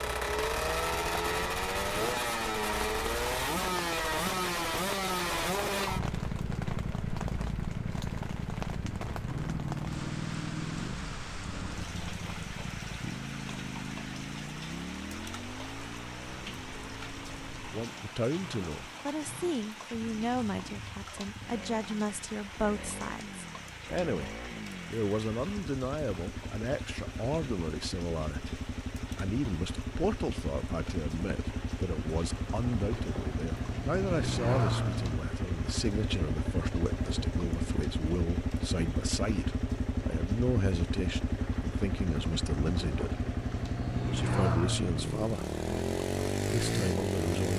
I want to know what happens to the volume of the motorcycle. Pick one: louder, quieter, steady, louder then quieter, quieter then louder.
quieter then louder.